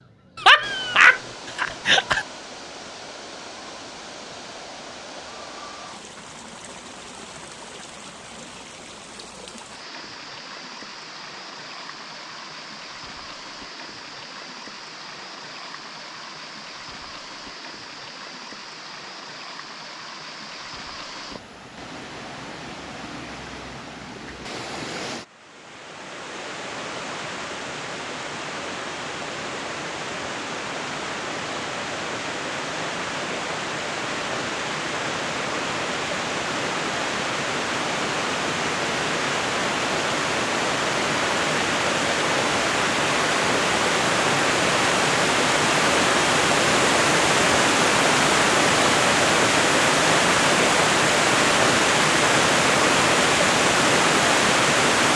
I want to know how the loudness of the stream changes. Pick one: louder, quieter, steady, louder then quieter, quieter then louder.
louder.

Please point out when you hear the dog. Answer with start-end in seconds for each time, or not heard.
0.3-2.2.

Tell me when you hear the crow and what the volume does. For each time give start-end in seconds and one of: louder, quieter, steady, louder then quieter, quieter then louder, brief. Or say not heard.
not heard.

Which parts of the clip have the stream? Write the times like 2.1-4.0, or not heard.
0.0-55.1.